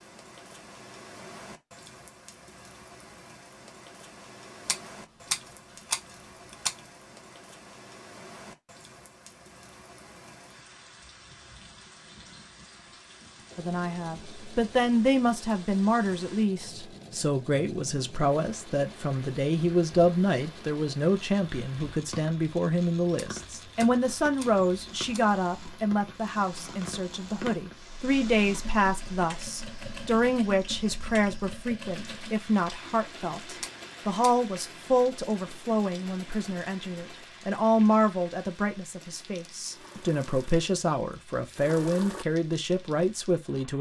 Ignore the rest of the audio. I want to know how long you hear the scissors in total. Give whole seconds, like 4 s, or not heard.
5 s.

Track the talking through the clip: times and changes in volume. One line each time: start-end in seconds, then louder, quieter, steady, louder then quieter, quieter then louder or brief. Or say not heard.
13.6-43.7 steady.